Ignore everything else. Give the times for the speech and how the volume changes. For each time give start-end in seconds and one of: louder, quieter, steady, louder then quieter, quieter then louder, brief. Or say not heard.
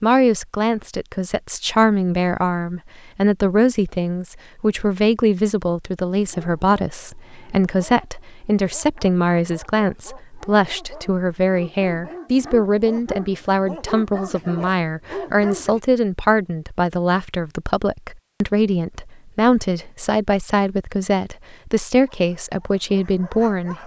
0.0-23.8 steady.